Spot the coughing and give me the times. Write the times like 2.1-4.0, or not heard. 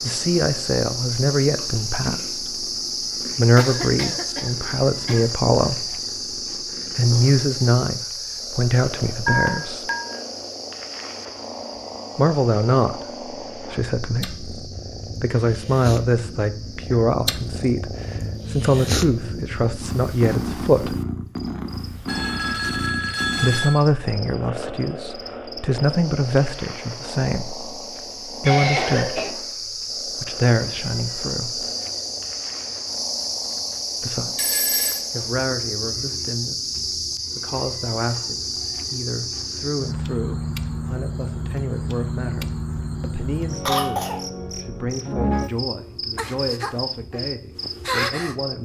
3.5-5.3, 28.4-29.4, 43.6-44.2.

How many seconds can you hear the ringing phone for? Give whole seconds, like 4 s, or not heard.
3 s.